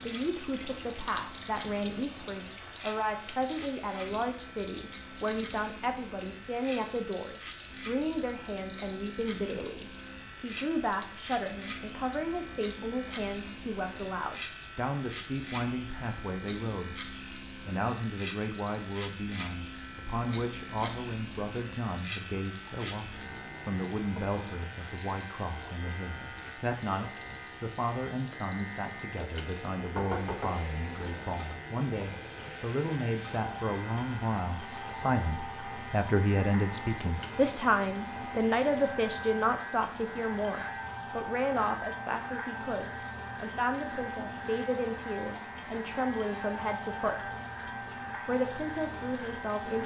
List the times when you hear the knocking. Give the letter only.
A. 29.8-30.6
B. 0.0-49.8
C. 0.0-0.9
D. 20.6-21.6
A.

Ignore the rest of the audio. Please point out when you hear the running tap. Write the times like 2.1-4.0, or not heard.
0.0-49.8.